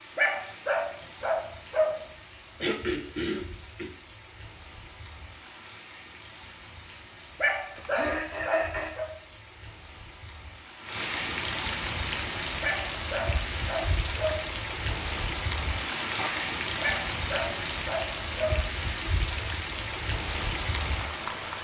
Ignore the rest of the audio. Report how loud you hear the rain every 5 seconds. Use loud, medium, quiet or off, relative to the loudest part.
quiet, quiet, loud, loud, loud.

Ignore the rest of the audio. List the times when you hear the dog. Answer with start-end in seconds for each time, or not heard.
0.1-2.0, 7.4-9.1, 12.6-14.4, 16.8-18.6.